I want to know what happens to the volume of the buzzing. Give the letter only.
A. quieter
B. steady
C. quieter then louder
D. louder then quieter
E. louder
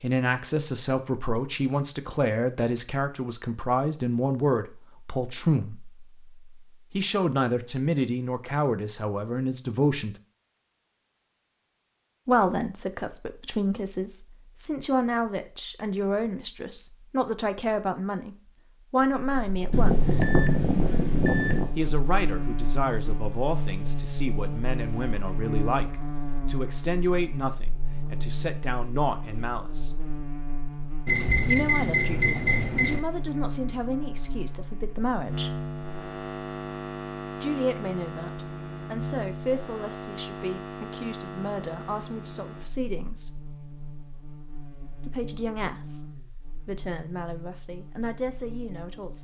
A.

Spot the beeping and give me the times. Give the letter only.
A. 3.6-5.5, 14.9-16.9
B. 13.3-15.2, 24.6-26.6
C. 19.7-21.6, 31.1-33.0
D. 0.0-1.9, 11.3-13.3
C.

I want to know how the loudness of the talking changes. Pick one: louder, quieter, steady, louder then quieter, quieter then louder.
quieter.